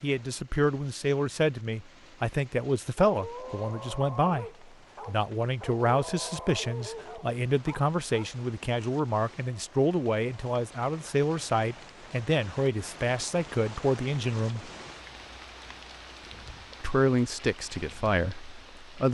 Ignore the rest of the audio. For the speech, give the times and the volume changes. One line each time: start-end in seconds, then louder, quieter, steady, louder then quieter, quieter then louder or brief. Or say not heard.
0.0-14.7 steady
16.8-19.0 brief.